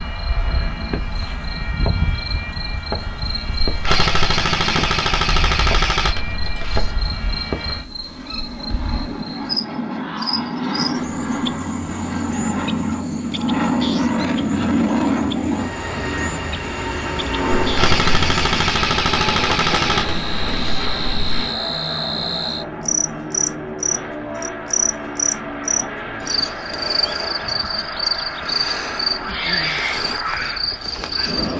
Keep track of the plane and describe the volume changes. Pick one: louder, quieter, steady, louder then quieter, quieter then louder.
louder then quieter.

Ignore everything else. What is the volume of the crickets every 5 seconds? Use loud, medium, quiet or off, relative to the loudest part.
medium, medium, medium, medium, loud, loud, loud.